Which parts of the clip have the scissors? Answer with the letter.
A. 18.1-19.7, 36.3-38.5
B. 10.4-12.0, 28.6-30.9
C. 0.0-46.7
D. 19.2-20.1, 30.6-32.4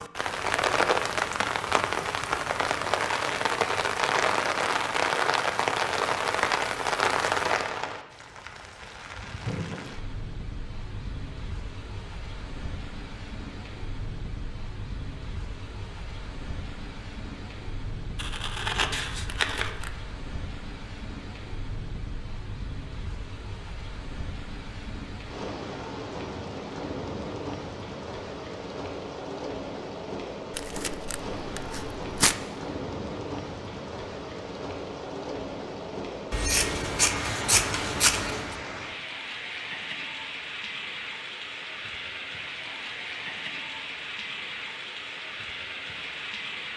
A.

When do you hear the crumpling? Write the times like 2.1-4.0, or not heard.
19.2-20.1, 30.6-32.4.